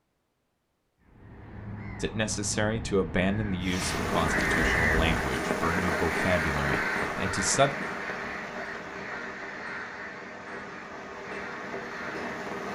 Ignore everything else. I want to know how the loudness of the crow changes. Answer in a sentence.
The volume of the crow goes up, then down.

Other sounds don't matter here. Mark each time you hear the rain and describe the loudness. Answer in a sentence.
The rain can be heard from 3.6 to 12.6 s, getting quieter.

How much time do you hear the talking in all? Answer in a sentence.
The talking can be heard for 6 seconds in total.